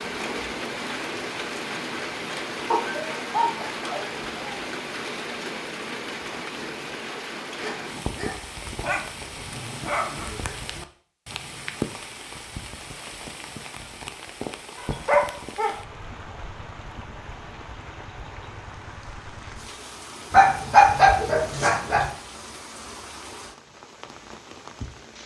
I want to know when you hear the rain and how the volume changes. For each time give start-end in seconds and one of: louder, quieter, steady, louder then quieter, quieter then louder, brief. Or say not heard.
0.0-25.2 quieter.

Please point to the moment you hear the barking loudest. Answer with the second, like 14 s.
21 s.